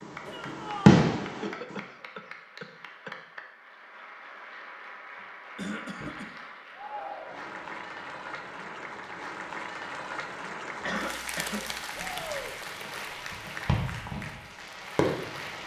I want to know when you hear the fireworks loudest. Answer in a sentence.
The volume of the fireworks peaks at 1 second.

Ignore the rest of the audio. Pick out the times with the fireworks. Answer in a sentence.
The fireworks can be heard from 0.0 to 1.8 s and from 11.9 to 15.6 s.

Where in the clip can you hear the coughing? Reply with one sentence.
The coughing can be heard from 1.4 to 3.1 s, from 5.5 to 6.3 s and from 10.8 to 11.8 s.